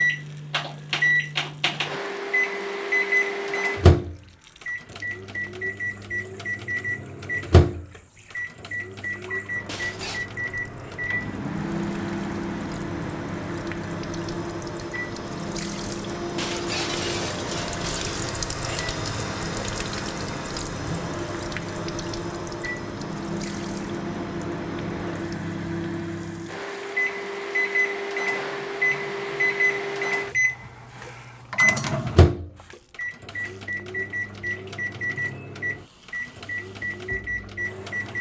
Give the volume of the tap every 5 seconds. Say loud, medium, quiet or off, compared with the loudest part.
quiet, quiet, medium, loud, loud, quiet, quiet, quiet.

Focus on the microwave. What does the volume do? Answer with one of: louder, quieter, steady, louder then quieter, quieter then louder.
quieter then louder.